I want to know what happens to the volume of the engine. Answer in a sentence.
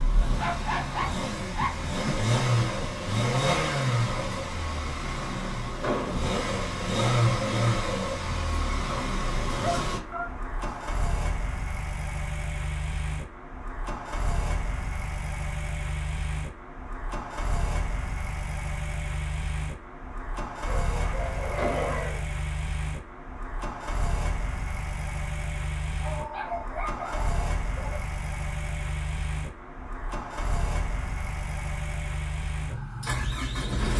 The loudness of the engine goes down.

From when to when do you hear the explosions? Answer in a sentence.
The explosions can be heard from 5.8 to 6.2 s and from 21.6 to 22.0 s.